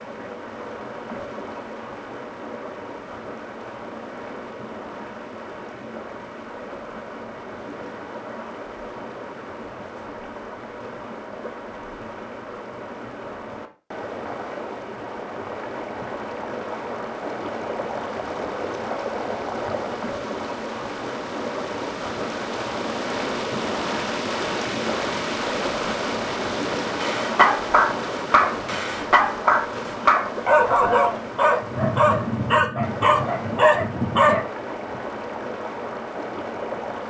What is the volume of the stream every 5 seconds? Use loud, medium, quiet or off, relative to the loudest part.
medium, medium, medium, loud, loud, loud, medium, loud.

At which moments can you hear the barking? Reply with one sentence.
You can hear the barking from 27.0 to 34.5 s.